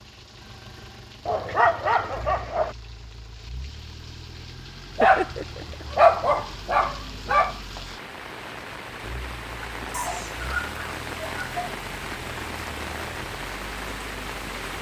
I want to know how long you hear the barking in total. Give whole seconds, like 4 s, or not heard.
6 s.